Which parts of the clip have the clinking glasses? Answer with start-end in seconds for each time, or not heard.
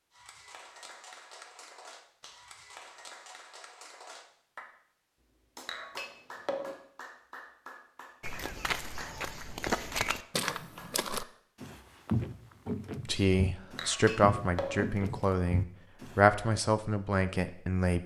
5.7-6.8, 13.8-14.8.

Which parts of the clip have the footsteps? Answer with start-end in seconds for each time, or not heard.
8.2-16.2.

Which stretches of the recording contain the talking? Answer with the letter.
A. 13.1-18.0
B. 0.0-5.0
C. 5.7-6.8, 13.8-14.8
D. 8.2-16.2
A.